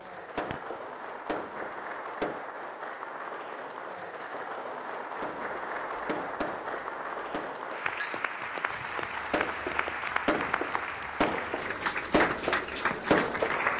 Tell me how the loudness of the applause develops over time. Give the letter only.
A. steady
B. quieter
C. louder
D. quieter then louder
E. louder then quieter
C.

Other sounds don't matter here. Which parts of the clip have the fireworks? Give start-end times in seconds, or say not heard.
0.1-2.5, 5.2-7.5, 9.3-13.7.